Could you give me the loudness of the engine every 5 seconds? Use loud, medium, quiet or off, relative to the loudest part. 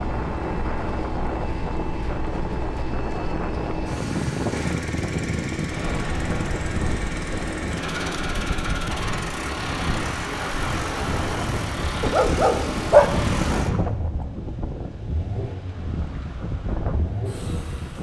loud, loud, loud, medium.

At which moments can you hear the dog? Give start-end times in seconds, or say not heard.
12.0-13.5.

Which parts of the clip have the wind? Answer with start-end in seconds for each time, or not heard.
0.0-17.9.